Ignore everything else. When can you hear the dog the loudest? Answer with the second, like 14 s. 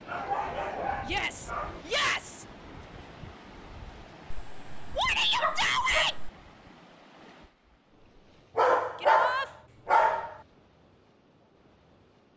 9 s.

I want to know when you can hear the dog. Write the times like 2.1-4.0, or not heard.
0.1-1.9, 4.3-6.3, 8.6-10.4.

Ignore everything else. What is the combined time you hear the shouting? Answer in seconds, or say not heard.
3 s.